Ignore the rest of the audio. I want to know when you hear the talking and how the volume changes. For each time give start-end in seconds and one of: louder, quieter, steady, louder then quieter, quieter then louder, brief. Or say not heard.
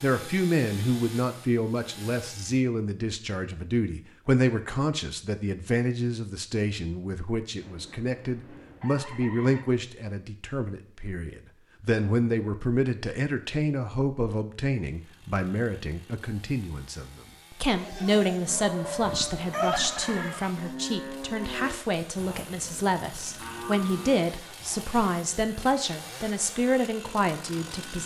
0.0-28.0 steady.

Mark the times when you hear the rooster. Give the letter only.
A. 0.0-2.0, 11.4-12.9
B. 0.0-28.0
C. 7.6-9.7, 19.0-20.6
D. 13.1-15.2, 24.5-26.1
C.